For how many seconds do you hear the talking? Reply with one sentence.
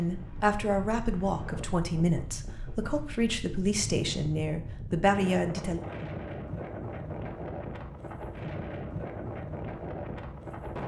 You can hear the talking for 6 seconds altogether.